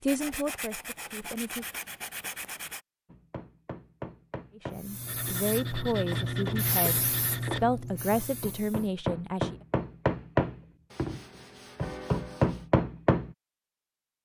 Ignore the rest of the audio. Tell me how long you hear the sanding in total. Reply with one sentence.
You can hear the sanding for 7 seconds altogether.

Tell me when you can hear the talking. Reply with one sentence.
The talking can be heard from 0.0 to 1.6 s and from 4.5 to 9.6 s.